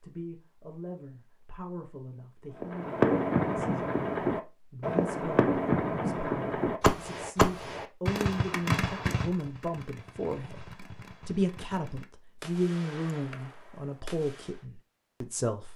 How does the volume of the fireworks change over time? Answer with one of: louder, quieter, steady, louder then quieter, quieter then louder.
quieter.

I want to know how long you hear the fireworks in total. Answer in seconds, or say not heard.
12 s.